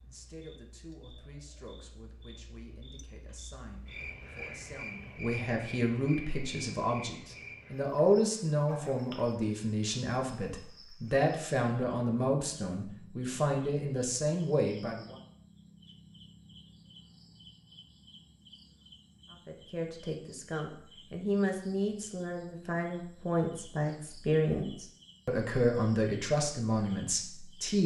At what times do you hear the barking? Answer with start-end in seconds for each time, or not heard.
not heard.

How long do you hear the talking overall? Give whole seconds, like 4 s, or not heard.
24 s.